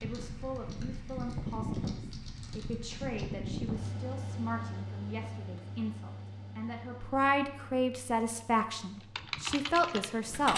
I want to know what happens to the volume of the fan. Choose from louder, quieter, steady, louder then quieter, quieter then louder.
quieter.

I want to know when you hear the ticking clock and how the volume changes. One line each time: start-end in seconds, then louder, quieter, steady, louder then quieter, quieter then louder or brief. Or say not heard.
not heard.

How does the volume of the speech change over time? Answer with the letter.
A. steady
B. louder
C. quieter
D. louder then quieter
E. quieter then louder
B.